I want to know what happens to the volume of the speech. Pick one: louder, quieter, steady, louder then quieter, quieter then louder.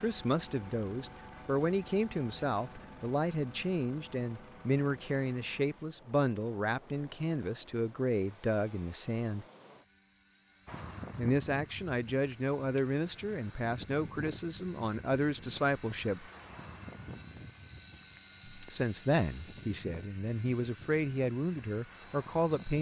steady.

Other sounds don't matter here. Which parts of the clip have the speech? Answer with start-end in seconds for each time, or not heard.
0.0-9.4, 11.2-16.3, 18.4-22.7.